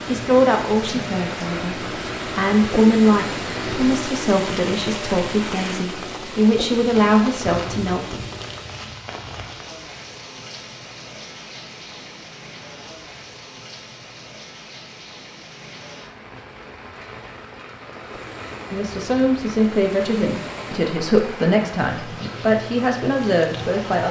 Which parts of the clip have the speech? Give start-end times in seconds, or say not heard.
0.1-8.2, 18.7-24.0.